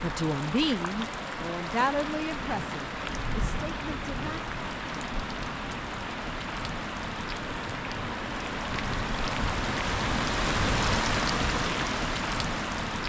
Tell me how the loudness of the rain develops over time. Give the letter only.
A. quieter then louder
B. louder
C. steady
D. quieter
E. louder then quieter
B.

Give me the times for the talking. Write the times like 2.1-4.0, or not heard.
0.0-4.5.